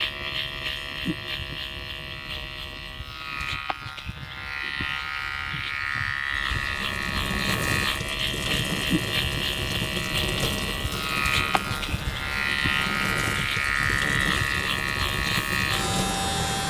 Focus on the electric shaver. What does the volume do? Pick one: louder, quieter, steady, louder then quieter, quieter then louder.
louder.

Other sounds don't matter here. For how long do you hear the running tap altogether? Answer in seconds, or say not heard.
10 s.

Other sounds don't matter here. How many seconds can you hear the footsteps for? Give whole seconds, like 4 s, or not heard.
not heard.